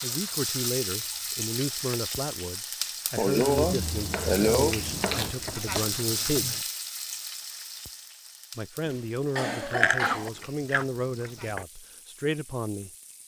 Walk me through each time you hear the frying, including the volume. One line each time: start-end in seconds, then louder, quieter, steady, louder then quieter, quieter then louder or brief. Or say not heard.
0.0-13.2 quieter.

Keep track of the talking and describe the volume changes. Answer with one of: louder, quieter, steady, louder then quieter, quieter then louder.
steady.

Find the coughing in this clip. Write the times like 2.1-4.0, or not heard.
3.1-4.8, 8.8-10.3.